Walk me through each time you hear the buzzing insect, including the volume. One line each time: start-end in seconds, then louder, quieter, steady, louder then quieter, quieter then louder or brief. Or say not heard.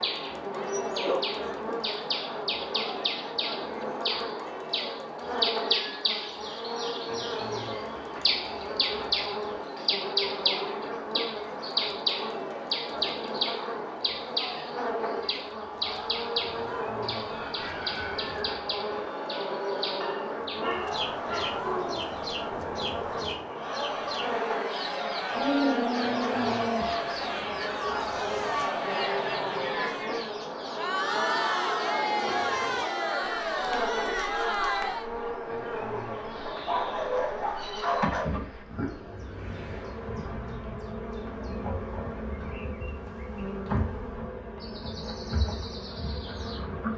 0.0-46.9 steady.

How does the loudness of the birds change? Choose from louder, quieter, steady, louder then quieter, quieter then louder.
quieter.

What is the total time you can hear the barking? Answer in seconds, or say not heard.
7 s.